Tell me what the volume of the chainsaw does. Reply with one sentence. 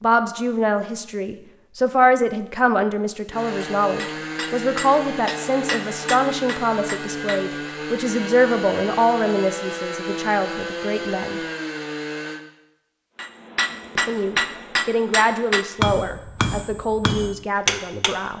The volume of the chainsaw stays about the same.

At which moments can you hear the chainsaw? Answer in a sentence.
The chainsaw can be heard from 3.3 to 12.4 s.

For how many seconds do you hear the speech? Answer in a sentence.
The speech can be heard for 16 seconds in total.